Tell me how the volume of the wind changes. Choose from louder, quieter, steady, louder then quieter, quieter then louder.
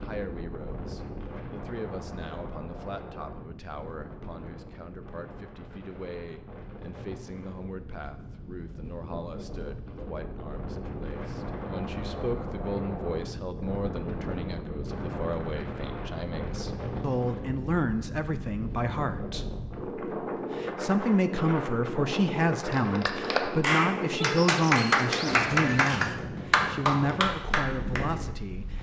louder.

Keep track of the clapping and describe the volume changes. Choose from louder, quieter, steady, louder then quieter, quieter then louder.
steady.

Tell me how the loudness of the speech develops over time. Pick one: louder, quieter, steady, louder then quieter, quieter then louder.
louder.